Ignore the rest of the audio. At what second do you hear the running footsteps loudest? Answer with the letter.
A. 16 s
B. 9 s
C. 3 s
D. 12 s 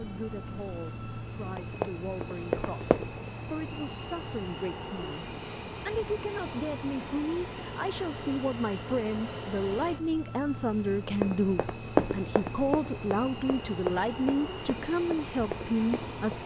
D.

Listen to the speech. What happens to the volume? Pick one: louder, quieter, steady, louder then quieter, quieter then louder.
louder.